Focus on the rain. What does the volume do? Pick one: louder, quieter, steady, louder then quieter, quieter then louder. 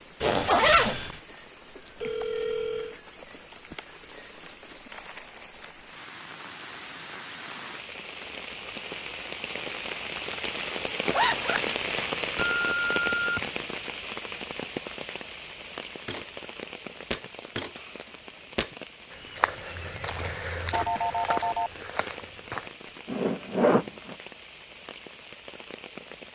louder then quieter.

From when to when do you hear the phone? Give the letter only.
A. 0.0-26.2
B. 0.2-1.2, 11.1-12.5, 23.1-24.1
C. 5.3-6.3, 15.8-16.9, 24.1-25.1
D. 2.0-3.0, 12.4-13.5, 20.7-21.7
D.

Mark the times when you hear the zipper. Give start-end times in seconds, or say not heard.
0.2-1.2, 11.1-12.5, 23.1-24.1.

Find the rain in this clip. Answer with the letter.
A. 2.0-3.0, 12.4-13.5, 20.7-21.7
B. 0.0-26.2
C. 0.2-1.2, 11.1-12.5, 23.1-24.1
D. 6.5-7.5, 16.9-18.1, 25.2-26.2
B.